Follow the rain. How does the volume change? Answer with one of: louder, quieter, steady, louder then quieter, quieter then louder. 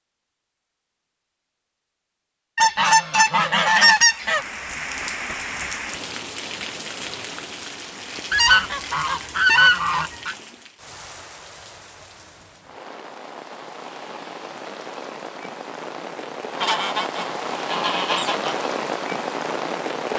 quieter then louder.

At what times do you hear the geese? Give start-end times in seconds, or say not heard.
2.5-4.5, 8.3-10.3, 16.6-18.6.